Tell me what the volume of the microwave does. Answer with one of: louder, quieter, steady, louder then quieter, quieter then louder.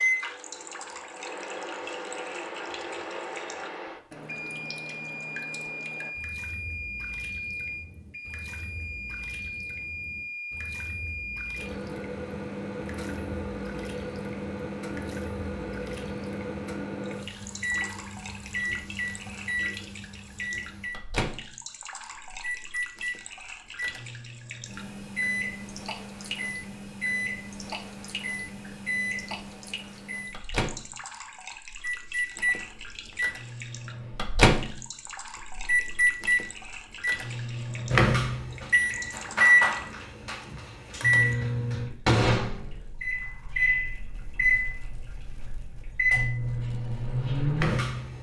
louder.